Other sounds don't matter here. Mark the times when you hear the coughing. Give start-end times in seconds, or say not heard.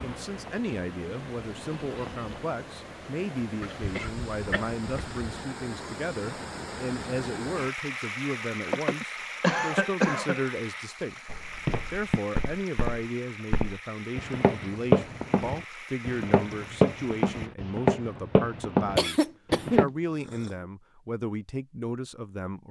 3.6-5.2, 8.7-10.4, 18.9-20.5.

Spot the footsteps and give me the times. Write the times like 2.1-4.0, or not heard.
11.2-19.9.